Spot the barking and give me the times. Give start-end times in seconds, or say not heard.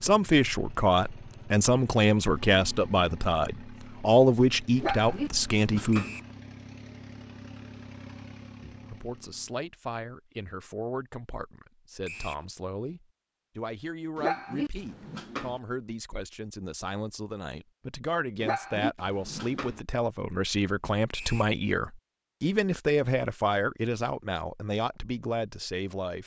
4.8-6.2, 14.2-15.6, 18.4-19.8.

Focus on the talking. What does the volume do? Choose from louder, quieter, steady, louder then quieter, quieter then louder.
quieter then louder.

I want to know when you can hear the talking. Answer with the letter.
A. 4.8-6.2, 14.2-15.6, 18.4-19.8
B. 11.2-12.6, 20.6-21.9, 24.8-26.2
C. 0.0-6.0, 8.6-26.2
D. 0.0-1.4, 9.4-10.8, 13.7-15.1
C.